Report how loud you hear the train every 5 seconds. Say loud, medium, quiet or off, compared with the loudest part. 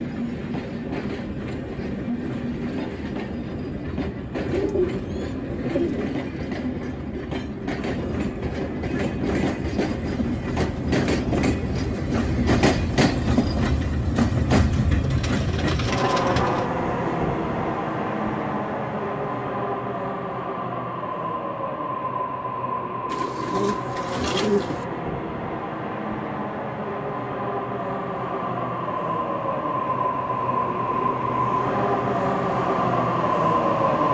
medium, medium, loud, loud, medium, medium, loud.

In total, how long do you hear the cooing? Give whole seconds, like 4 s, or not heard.
5 s.